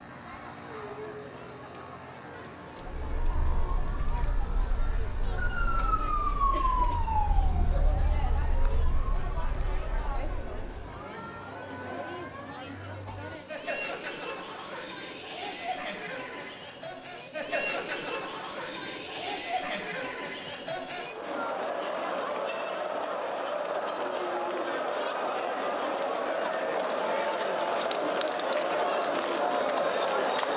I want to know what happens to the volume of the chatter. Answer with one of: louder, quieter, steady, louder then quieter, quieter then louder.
louder.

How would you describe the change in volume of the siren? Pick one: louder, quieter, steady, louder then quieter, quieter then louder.
louder then quieter.